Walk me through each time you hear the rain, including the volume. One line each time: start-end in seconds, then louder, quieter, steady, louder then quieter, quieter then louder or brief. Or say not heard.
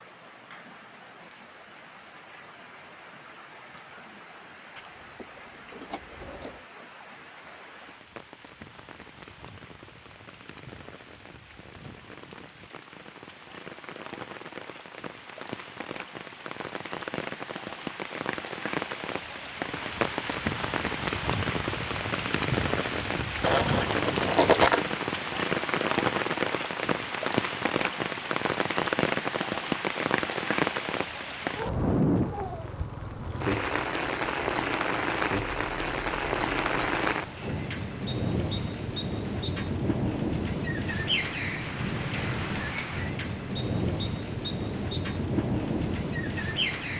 0.0-46.9 louder.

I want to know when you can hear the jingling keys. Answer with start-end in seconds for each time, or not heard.
4.8-6.7, 23.4-24.9, 35.3-37.0.